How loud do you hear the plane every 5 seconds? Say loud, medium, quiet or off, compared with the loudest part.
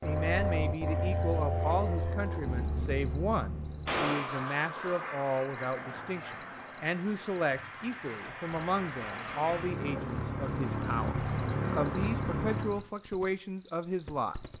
loud, medium, loud.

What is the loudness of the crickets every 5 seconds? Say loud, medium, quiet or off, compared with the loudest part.
medium, medium, loud.